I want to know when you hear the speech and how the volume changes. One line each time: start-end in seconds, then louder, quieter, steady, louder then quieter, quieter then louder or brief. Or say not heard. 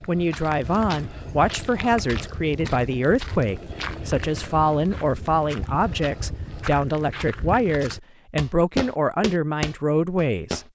0.0-10.6 steady.